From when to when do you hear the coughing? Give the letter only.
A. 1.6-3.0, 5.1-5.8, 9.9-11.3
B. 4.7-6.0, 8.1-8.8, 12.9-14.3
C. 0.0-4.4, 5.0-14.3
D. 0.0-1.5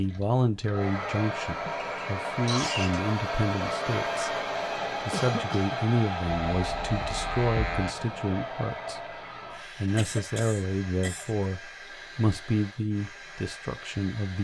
A.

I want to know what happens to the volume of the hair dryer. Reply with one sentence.
The loudness of the hair dryer goes down.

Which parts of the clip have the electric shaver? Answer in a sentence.
You can hear the electric shaver from 6.5 to 8.0 s.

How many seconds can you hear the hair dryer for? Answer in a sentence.
The hair dryer can be heard for 14 seconds in total.